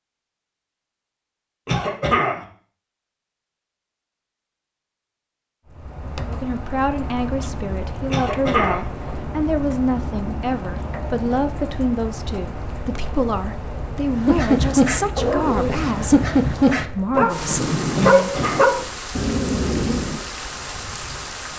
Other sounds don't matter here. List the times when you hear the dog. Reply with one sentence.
The dog can be heard from 14.2 to 20.2 s.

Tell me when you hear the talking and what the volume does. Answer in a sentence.
You can hear the talking from 6.2 to 18.3 s, at a steady volume.